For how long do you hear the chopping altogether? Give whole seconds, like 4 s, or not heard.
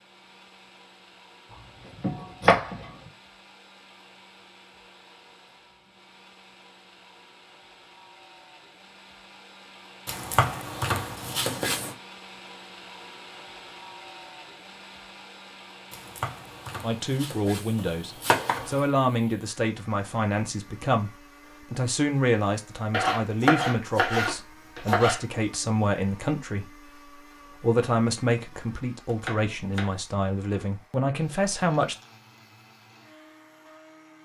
10 s.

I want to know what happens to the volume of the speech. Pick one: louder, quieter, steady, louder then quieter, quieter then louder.
steady.